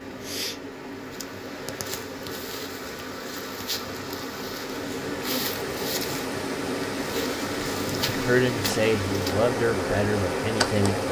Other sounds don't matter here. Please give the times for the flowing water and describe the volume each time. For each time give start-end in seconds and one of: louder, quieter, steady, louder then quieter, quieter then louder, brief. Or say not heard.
0.0-11.0 louder.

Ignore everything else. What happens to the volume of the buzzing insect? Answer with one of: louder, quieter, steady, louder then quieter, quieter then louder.
louder.